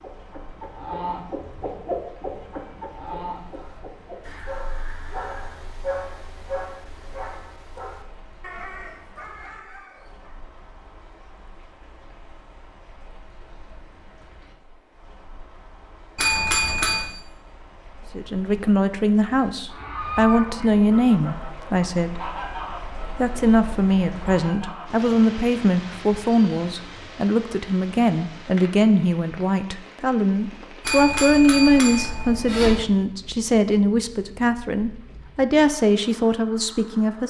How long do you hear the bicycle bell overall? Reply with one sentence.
You can hear the bicycle bell for 3 seconds altogether.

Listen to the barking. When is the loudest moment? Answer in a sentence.
The loudest moment of the barking is at 6 seconds.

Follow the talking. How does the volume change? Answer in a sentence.
The volume of the talking stays about the same.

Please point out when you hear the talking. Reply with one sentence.
The talking can be heard from 18.1 to 22.4 s and from 23.0 to 37.2 s.